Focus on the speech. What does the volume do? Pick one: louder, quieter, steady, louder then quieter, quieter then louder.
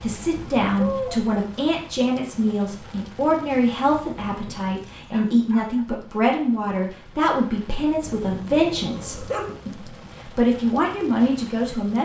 steady.